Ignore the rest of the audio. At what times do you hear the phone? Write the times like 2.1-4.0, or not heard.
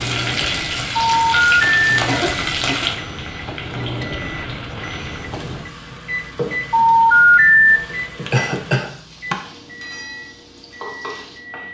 1.0-1.9, 6.7-7.8.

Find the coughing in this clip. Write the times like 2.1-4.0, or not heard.
2.0-2.9, 8.3-9.3.